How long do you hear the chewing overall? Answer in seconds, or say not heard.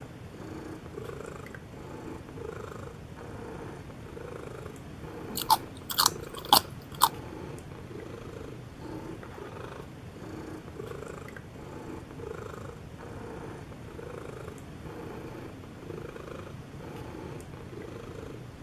2 s.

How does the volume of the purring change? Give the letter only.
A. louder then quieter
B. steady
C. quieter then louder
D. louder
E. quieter
B.